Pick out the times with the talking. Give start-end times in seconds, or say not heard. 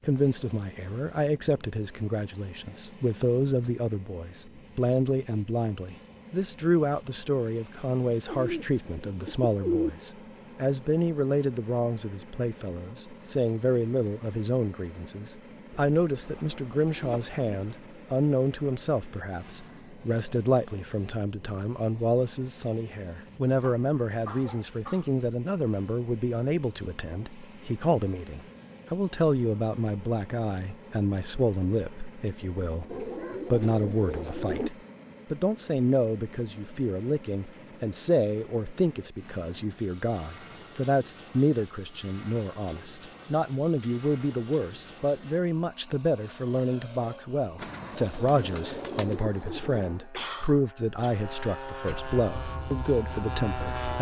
0.1-53.9.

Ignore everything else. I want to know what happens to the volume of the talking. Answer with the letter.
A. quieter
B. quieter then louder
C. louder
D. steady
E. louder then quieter
D.